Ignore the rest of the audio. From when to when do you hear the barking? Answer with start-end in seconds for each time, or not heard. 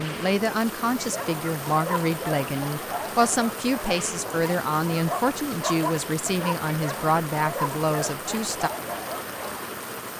0.9-9.6.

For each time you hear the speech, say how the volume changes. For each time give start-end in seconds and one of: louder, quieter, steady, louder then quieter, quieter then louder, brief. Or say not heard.
0.0-8.7 steady.